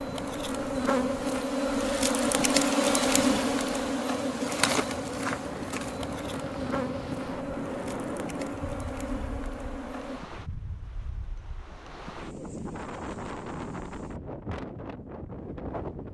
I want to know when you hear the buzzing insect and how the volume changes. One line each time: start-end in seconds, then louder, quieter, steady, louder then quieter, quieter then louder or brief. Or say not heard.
0.0-10.2 quieter.